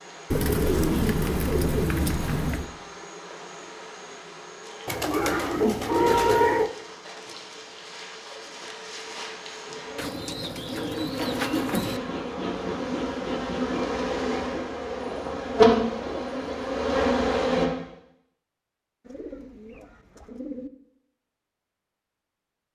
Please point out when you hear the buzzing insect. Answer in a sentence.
The buzzing insect can be heard from 0.0 to 17.7 s.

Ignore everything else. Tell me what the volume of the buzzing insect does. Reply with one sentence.
The loudness of the buzzing insect goes up.